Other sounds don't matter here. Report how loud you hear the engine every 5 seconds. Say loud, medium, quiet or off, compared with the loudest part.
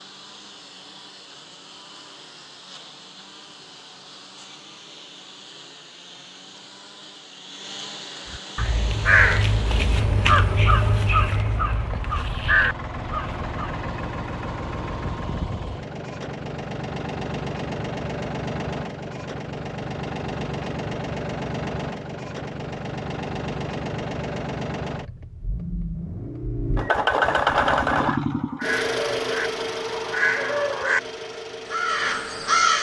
quiet, quiet, medium, medium, medium, loud, medium.